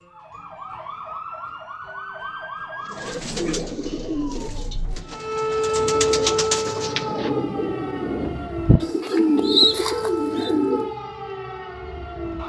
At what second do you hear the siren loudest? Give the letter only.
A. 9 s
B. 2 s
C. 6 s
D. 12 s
C.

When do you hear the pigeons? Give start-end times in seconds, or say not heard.
2.9-10.9.